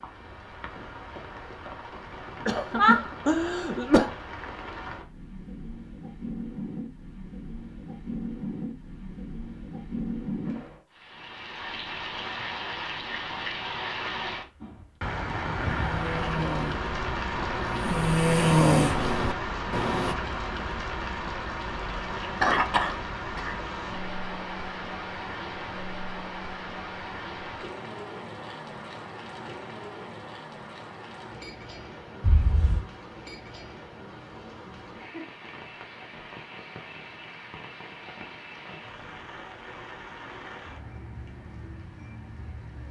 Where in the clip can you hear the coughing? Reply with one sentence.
The coughing can be heard from 2.5 to 4.1 s, from 22.4 to 23.6 s and from 32.2 to 32.9 s.